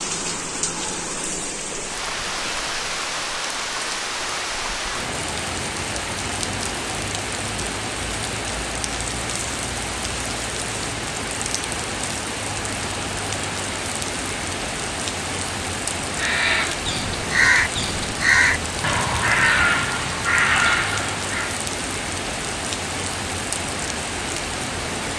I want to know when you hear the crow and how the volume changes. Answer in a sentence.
You can hear the crow from 16.1 to 21.6 s, at a steady volume.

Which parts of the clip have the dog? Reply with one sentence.
You can't hear the dog here.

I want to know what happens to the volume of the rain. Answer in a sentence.
The loudness of the rain stays about the same.